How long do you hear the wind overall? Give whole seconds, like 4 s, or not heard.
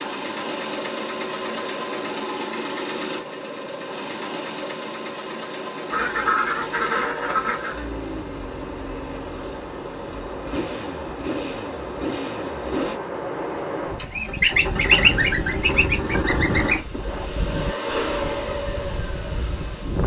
20 s.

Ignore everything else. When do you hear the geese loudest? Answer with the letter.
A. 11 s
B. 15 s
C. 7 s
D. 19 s
B.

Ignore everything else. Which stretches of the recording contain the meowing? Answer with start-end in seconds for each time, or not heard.
not heard.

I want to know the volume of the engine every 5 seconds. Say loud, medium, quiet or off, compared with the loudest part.
loud, medium, loud, loud.